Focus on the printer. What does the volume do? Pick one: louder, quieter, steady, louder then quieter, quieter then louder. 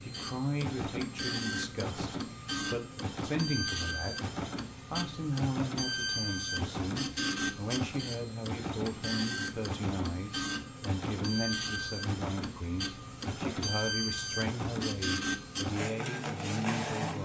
steady.